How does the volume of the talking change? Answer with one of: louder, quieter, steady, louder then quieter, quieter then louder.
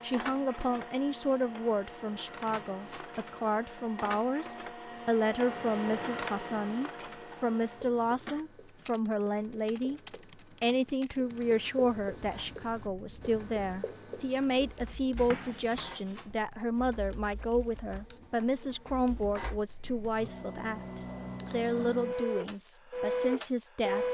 steady.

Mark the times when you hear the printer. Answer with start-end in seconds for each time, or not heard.
0.0-8.4, 12.2-24.0.